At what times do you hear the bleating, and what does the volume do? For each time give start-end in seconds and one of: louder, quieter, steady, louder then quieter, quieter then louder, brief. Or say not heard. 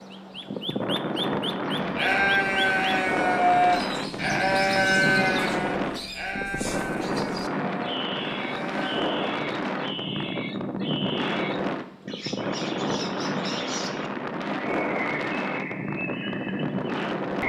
1.8-9.1 quieter.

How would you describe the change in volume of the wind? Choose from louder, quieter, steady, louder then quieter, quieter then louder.
steady.